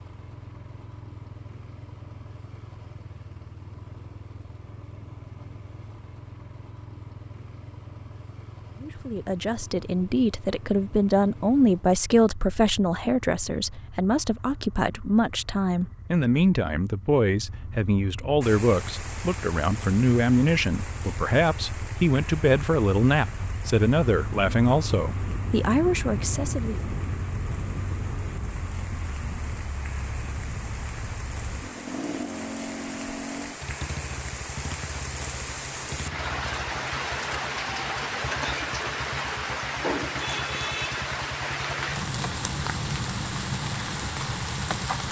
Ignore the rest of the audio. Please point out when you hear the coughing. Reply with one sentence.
You can't hear the coughing here.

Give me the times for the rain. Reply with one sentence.
The rain can be heard from 18.4 to 45.0 s.